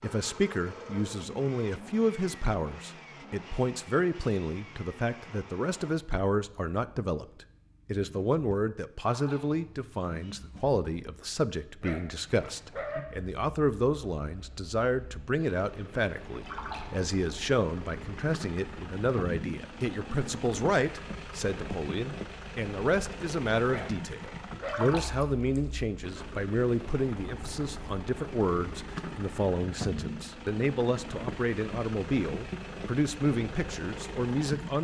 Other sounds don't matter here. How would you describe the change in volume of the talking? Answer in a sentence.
The volume of the talking stays about the same.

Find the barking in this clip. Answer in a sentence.
You can hear the barking from 11.8 to 13.0 s and from 23.6 to 24.9 s.